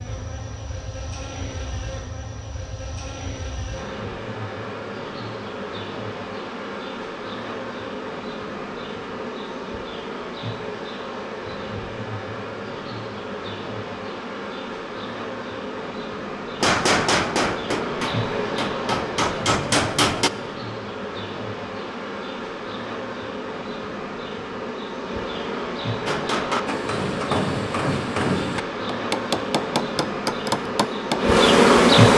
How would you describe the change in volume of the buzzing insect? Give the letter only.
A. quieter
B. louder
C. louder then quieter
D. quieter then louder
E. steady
B.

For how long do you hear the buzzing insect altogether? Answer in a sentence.
You can hear the buzzing insect for 32 seconds altogether.